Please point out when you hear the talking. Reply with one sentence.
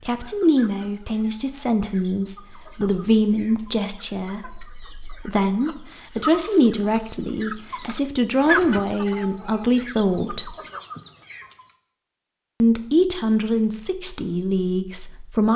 The talking can be heard from 0.1 to 10.6 s and from 12.6 to 15.5 s.